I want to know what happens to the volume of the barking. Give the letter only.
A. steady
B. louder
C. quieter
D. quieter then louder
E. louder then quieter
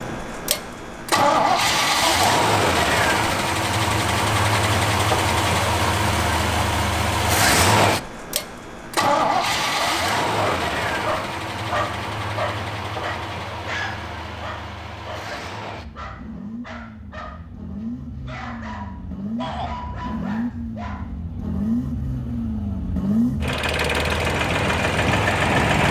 C.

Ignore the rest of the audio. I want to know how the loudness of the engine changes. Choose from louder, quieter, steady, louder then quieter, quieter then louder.
quieter then louder.